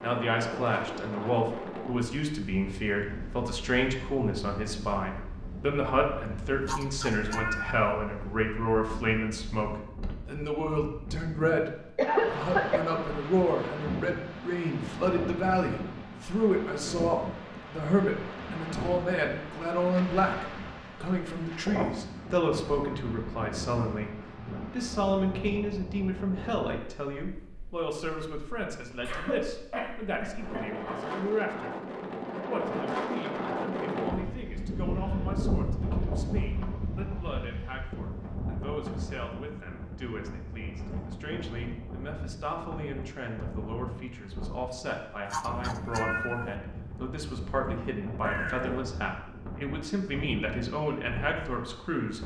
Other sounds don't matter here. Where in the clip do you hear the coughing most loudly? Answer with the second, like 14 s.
12 s.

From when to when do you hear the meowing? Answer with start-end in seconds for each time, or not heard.
6.6-7.8, 45.2-46.5.